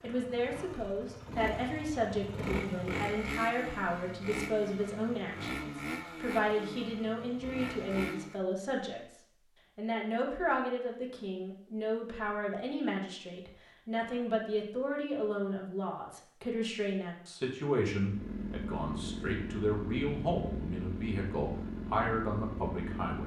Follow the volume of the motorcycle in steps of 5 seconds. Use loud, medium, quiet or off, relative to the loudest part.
loud, loud, off, loud, loud.